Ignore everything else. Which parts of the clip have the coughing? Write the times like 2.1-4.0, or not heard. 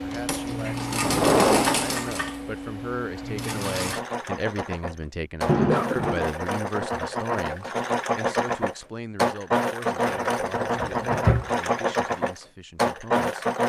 5.7-6.2.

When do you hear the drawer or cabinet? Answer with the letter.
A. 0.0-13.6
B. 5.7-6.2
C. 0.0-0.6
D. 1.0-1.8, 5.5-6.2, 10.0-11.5
D.